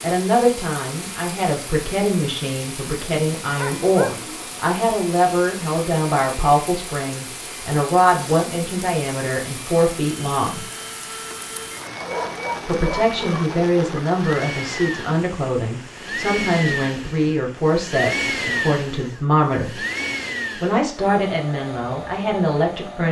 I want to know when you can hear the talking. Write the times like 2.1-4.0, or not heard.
0.0-10.7, 12.7-19.8, 20.6-23.0.